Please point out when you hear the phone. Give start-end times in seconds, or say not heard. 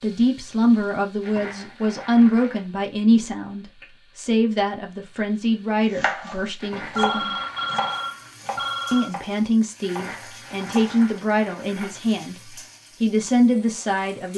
6.8-9.1.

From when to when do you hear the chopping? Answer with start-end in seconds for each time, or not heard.
6.0-11.2.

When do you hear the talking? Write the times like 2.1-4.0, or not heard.
0.0-7.4, 8.9-14.3.